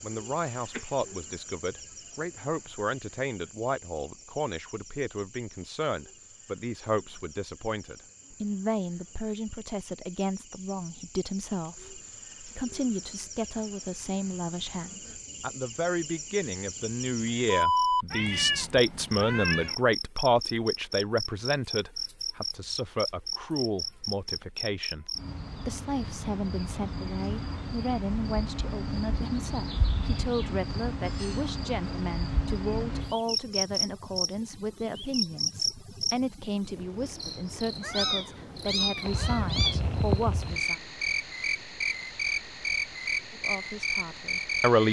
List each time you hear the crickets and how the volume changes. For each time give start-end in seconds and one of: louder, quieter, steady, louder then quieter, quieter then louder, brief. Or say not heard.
0.0-44.8 louder.